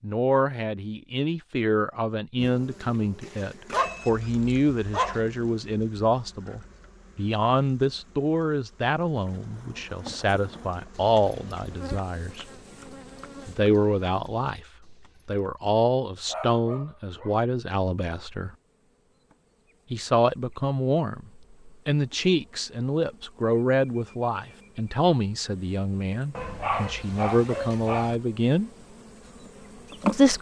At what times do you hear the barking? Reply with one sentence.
You can hear the barking from 3.7 to 5.2 s, from 16.2 to 17.4 s and from 26.4 to 28.1 s.